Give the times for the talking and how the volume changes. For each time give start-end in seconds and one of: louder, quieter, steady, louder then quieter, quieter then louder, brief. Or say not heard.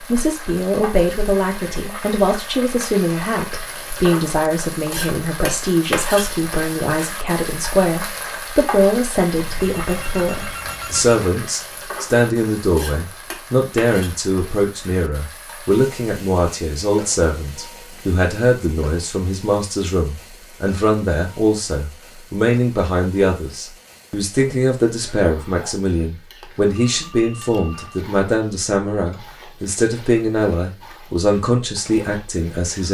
0.0-32.8 steady.